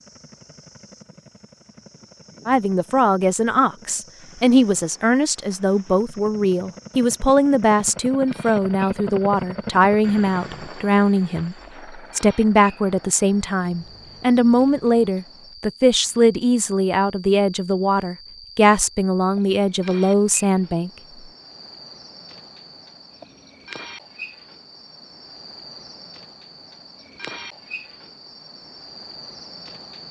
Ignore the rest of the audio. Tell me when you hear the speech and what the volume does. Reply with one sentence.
The speech can be heard from 2.5 to 20.9 s, at a steady volume.